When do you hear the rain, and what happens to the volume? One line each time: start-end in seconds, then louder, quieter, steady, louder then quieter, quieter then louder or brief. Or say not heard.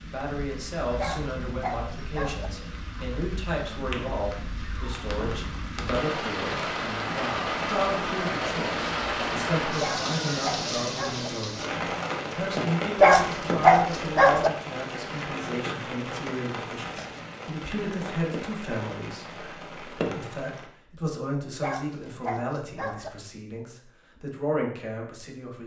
0.0-20.7 louder then quieter.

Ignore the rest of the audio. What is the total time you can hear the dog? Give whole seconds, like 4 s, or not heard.
6 s.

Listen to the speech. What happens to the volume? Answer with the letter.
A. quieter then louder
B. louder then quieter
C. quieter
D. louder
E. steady
E.